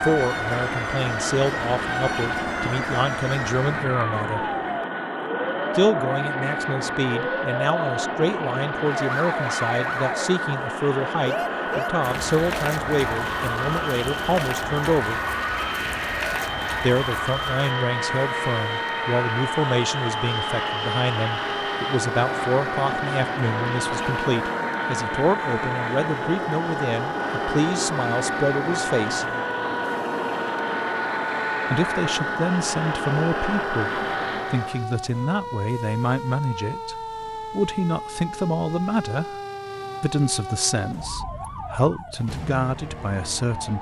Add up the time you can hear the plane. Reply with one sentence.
You can hear the plane for 35 seconds altogether.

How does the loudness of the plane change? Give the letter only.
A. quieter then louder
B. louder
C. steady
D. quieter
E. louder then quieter
C.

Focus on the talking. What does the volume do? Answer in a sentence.
The loudness of the talking stays about the same.